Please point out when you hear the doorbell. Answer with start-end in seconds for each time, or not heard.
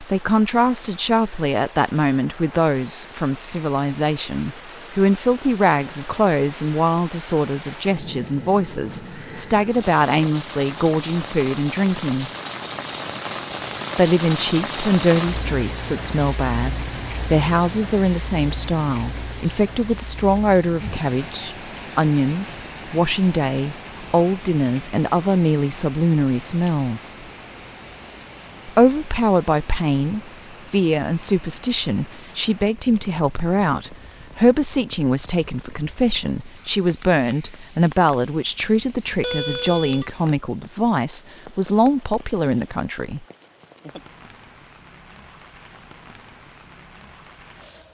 39.2-40.1.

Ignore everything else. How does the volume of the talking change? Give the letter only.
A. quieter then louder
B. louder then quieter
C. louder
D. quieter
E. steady
E.